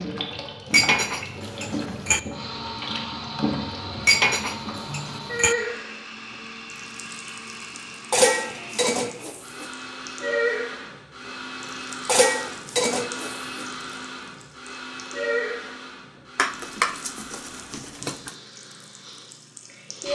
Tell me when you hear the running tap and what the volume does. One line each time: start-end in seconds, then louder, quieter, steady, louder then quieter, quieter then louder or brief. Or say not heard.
0.0-20.1 quieter.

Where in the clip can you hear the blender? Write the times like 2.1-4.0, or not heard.
2.3-20.1.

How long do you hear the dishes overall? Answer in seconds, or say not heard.
8 s.